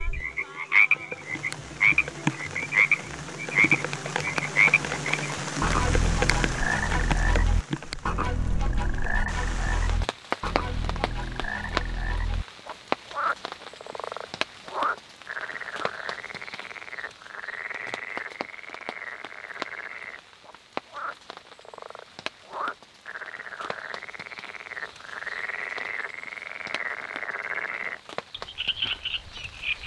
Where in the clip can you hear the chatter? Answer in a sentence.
The chatter can't be heard in this clip.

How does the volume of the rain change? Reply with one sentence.
The volume of the rain goes down.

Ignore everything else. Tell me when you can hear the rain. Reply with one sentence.
The rain can be heard from 0.0 to 29.8 s.